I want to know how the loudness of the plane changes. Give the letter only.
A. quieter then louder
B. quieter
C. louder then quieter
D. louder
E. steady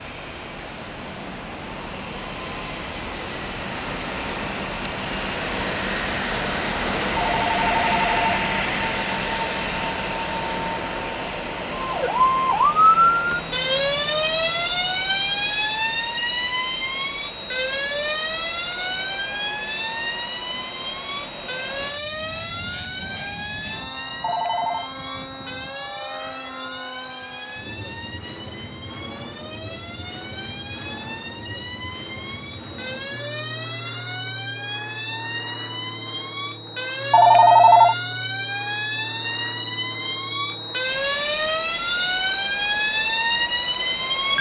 B.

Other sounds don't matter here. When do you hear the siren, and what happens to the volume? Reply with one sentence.
You can hear the siren from 11.8 to 44.3 s, getting quieter then louder.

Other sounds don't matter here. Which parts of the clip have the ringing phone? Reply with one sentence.
You can hear the ringing phone from 7.2 to 8.3 s, from 24.2 to 24.9 s and from 37.1 to 38.0 s.